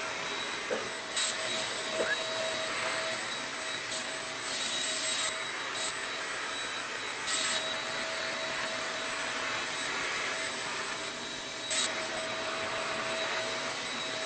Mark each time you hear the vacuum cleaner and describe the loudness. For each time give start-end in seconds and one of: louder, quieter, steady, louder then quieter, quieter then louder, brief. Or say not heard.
0.0-14.2 steady.